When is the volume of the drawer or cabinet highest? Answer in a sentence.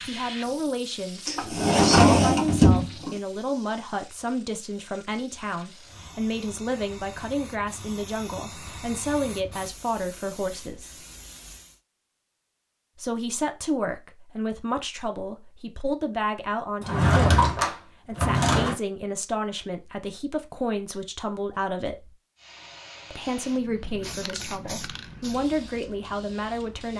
The loudest moment of the drawer or cabinet is at 2 seconds.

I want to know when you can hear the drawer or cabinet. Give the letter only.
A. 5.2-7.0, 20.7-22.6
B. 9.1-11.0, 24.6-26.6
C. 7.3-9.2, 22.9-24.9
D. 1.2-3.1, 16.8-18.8
D.